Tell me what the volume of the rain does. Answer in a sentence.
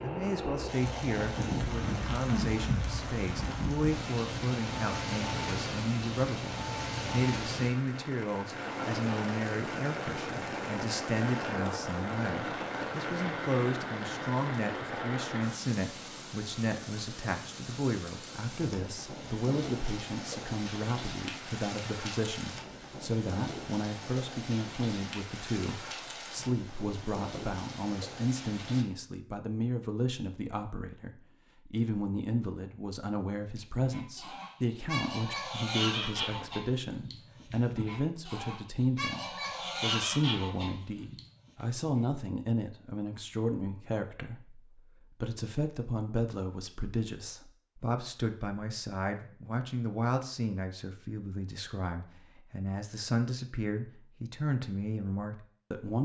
The loudness of the rain goes down.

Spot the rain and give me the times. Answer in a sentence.
You can hear the rain from 0.0 to 28.9 s.